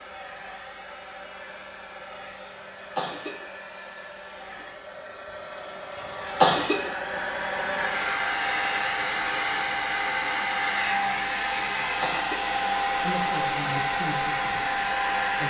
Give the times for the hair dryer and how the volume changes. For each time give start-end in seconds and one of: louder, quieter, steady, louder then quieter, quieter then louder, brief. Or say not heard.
0.0-15.4 louder.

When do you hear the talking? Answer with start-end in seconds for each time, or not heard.
13.0-15.4.